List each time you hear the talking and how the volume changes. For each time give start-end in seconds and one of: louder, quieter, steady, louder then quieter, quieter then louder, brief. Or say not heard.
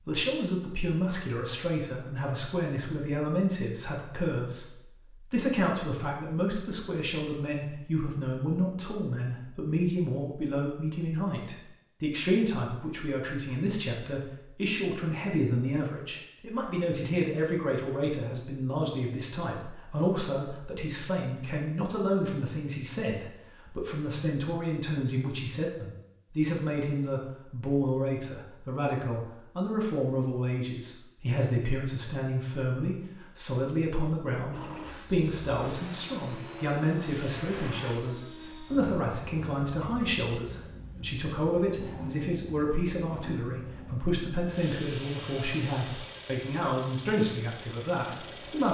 0.0-48.6 steady.